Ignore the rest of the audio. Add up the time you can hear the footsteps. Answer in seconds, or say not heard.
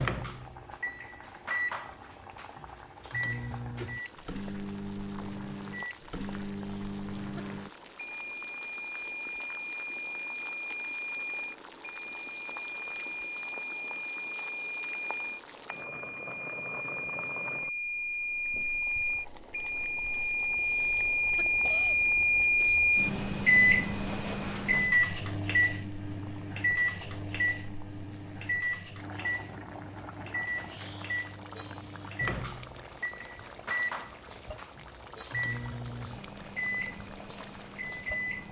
not heard.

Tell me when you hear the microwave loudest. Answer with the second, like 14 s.
23 s.